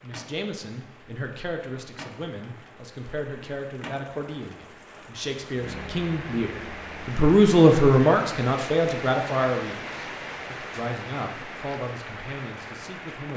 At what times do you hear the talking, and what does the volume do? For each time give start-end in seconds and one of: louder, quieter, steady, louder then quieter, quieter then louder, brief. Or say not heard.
0.0-13.3 louder then quieter.